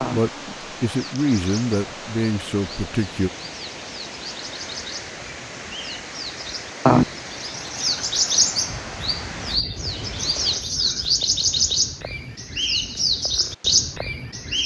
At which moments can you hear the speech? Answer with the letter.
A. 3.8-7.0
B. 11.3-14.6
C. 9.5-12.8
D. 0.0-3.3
D.